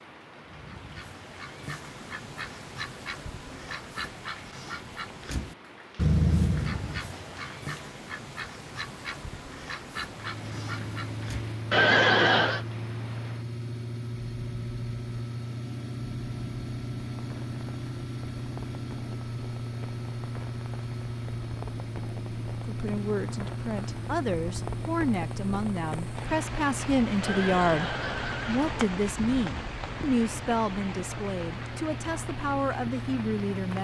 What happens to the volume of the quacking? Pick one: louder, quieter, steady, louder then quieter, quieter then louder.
louder then quieter.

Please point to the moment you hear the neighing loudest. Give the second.
12 s.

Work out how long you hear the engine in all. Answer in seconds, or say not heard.
24 s.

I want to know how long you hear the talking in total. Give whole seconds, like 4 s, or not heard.
11 s.